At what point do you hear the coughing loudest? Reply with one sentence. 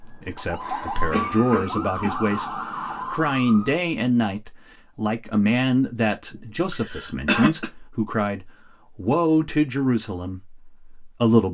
The loudest moment of the coughing is at 7 seconds.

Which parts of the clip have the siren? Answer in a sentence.
The siren can be heard from 0.0 to 3.8 s.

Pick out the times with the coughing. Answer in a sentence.
The coughing can be heard from 0.6 to 2.1 s and from 6.3 to 7.7 s.